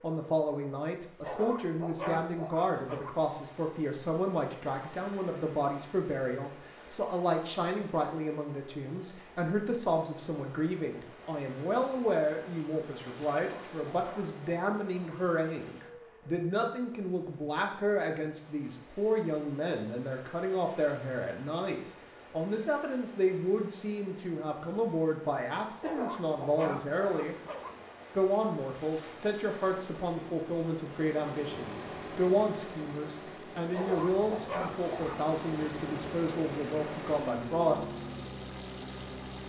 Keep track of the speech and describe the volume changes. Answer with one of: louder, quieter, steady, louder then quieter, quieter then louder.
steady.